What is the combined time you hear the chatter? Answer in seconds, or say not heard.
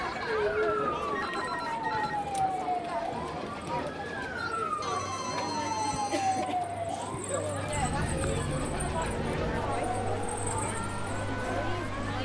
12 s.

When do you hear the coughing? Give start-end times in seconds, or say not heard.
not heard.